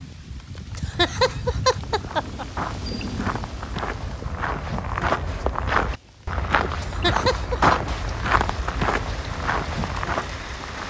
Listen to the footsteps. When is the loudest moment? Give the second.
8 s.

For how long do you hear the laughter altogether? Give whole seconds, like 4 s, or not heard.
3 s.